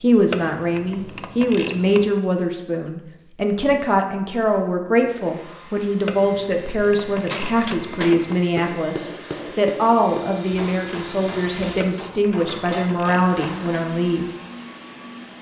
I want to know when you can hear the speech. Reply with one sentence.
The speech can be heard from 0.0 to 14.2 s.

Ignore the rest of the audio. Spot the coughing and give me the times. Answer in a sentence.
The coughing can't be heard in this clip.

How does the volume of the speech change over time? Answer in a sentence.
The volume of the speech stays about the same.